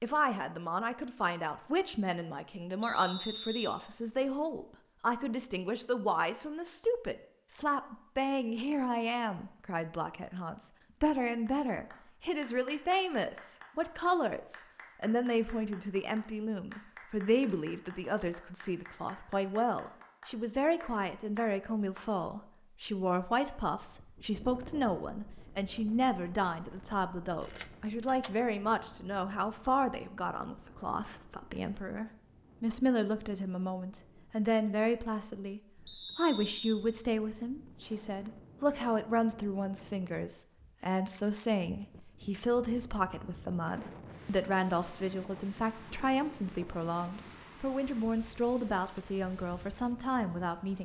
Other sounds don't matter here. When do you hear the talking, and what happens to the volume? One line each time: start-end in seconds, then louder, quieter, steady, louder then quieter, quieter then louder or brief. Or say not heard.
0.0-50.8 steady.